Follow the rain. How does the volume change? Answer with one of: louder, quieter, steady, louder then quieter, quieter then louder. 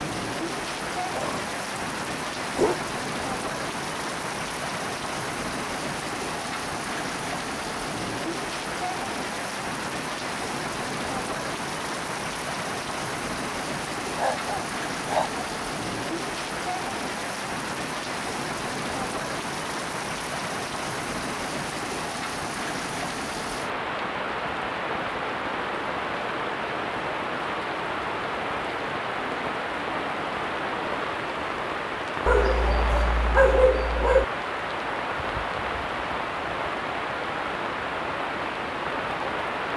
steady.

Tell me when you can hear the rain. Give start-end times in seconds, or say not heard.
0.0-39.7.